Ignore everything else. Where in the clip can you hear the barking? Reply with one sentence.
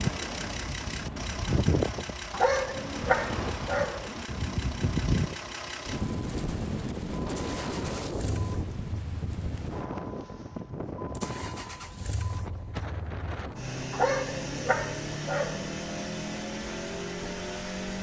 You can hear the barking from 2.3 to 4.1 s and from 13.9 to 15.7 s.